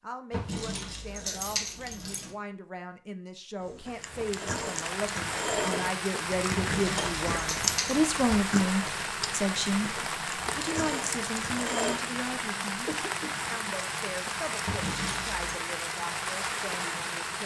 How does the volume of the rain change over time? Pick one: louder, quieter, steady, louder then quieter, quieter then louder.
steady.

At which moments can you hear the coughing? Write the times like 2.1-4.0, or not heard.
12.8-13.4.